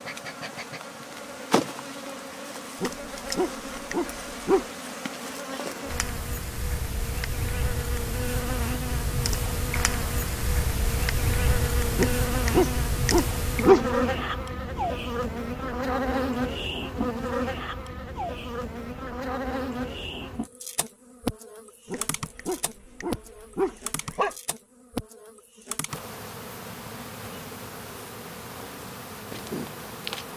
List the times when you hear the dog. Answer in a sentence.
You can hear the dog from 2.8 to 4.7 s, from 11.9 to 14.0 s and from 21.9 to 24.4 s.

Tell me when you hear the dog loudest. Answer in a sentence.
The loudest moment of the dog is at 14 seconds.